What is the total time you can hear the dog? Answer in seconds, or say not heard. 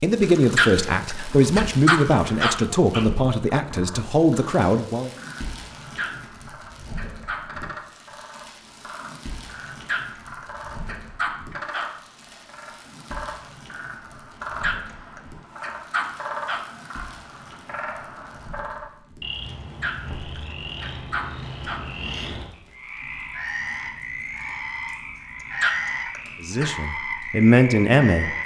12 s.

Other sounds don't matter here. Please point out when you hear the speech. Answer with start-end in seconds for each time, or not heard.
0.0-5.1, 26.4-28.4.